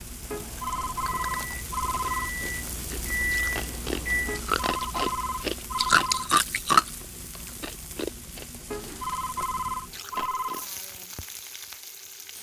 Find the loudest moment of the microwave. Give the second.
4 s.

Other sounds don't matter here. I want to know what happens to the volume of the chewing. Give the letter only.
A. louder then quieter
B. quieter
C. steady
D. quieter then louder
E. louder
A.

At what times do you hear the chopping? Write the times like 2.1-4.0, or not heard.
not heard.